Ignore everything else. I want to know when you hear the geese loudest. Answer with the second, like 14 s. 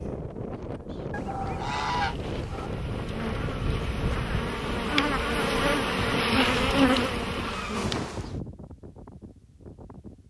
2 s.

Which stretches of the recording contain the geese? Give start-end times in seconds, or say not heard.
1.1-2.7, 6.3-7.8.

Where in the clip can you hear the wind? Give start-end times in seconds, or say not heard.
0.0-10.2.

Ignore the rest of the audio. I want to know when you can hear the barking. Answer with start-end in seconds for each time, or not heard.
not heard.